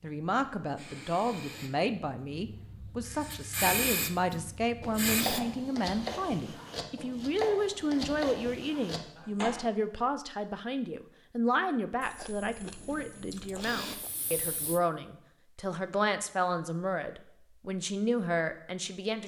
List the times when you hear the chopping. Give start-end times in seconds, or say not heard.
4.3-9.7.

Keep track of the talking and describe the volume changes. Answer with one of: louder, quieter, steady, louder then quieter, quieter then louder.
steady.